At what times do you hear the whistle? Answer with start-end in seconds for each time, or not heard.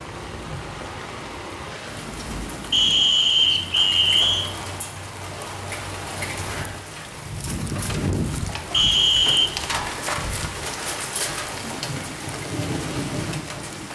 2.7-4.5, 8.7-9.5.